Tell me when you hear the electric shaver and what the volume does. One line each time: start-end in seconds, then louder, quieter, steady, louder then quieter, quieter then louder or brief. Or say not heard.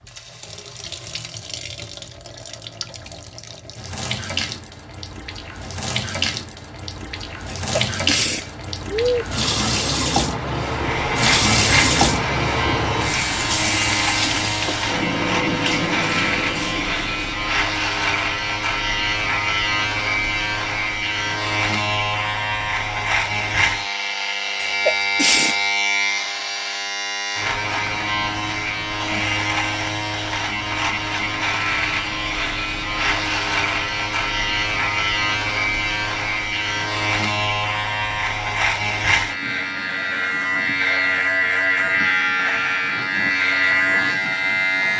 10.8-44.9 steady.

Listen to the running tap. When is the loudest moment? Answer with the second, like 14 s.
12 s.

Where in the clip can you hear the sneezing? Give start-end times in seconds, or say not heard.
7.5-9.2, 24.6-25.6.